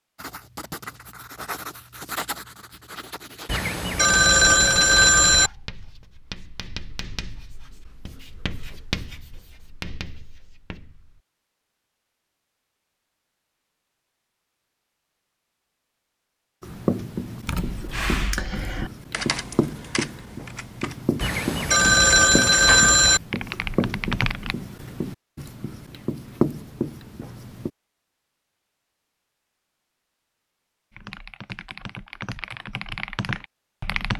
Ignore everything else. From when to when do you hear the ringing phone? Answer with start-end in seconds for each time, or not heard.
3.5-5.5, 21.2-23.2.